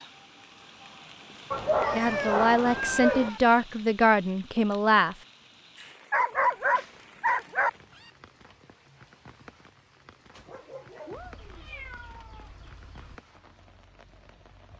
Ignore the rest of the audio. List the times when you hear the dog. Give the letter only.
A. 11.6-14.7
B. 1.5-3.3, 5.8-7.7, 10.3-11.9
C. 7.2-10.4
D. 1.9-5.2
B.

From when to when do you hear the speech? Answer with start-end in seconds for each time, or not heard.
1.9-5.2.